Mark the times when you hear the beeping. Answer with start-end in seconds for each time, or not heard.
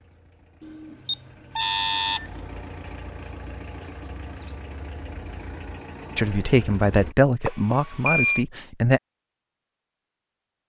0.6-2.3, 7.5-8.4.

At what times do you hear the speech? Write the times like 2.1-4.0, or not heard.
6.2-9.0.